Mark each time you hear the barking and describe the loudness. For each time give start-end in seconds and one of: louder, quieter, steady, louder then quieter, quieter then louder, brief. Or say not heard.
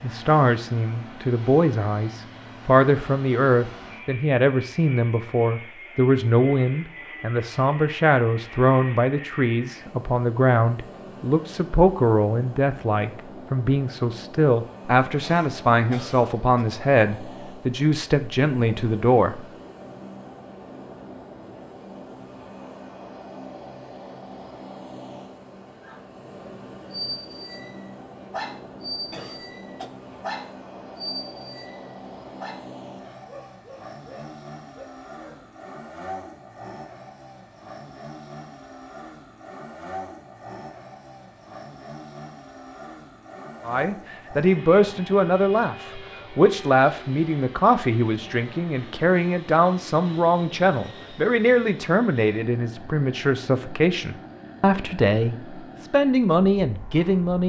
25.8-35.5 quieter.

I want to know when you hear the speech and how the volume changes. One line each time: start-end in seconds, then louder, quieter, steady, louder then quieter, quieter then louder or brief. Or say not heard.
0.0-19.4 steady
43.6-57.4 steady.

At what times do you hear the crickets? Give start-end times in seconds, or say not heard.
not heard.